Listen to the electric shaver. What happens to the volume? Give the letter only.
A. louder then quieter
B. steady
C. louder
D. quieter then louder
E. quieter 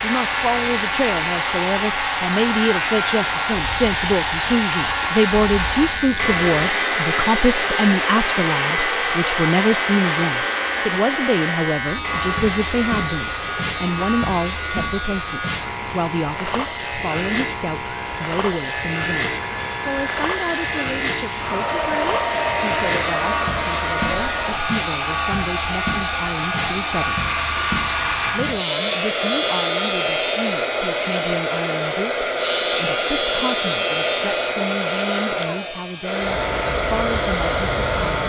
B.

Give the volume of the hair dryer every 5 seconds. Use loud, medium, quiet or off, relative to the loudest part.
loud, loud, medium, medium, loud, loud, loud, loud.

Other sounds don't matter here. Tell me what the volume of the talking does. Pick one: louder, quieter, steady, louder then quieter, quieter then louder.
quieter.